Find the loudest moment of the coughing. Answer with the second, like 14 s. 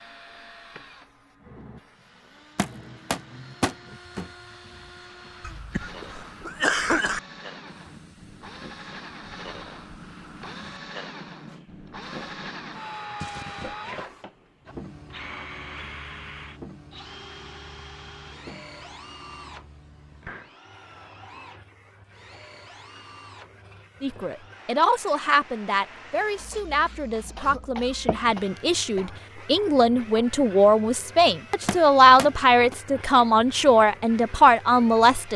7 s.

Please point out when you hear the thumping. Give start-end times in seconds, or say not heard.
2.5-4.3, 31.6-32.8.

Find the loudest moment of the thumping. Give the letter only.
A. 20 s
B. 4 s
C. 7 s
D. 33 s
B.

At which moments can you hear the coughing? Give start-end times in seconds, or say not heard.
5.4-7.2, 13.2-13.8, 27.4-29.1.